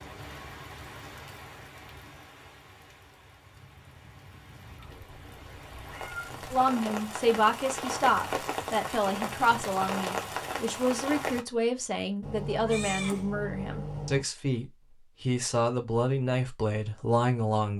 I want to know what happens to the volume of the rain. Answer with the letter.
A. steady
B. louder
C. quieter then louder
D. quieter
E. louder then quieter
C.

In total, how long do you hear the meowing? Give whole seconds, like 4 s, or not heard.
4 s.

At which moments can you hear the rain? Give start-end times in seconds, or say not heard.
0.0-11.4.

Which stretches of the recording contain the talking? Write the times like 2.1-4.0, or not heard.
6.5-17.7.